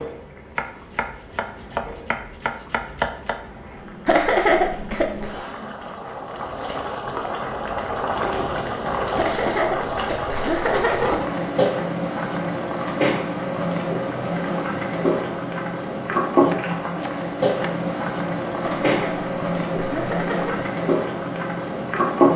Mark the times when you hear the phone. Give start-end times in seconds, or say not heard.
not heard.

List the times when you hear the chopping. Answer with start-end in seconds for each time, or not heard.
0.6-3.4, 16.4-17.8.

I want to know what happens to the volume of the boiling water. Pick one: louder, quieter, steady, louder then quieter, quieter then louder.
louder.